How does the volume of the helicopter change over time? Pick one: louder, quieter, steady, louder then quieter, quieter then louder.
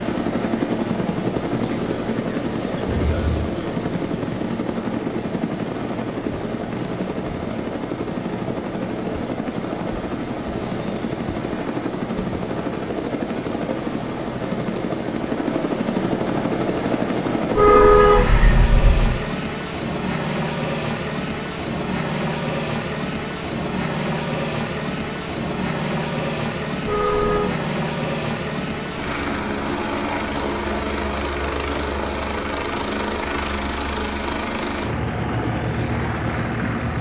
steady.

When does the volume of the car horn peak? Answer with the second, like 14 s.
18 s.